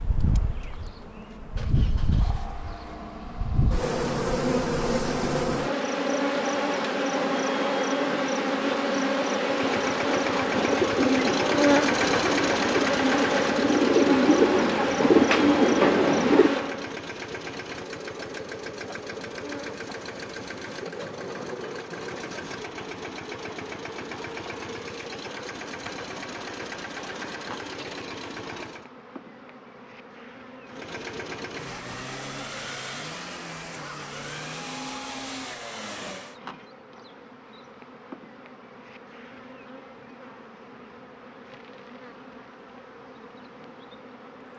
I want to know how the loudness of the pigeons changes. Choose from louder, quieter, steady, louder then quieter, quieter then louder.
louder.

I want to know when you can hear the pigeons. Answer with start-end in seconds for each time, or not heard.
10.5-16.5.